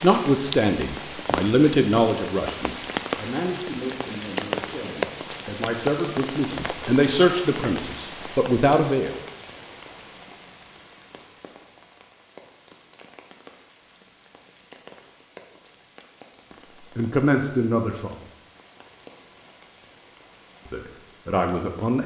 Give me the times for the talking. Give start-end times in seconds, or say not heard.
0.0-9.2, 16.9-18.2, 20.6-22.0.